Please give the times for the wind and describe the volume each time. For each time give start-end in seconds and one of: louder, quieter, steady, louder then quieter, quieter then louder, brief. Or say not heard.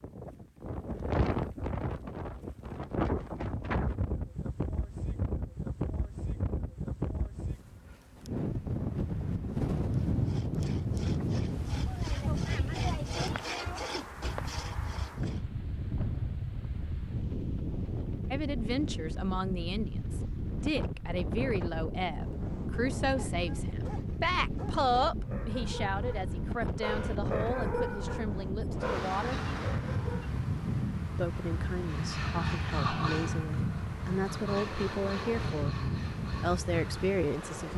0.0-37.7 steady.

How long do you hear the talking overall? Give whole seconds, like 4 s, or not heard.
18 s.